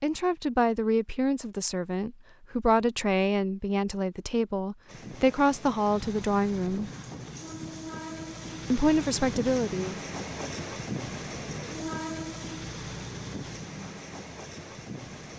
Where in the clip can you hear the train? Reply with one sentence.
The train can be heard from 4.8 to 15.3 s.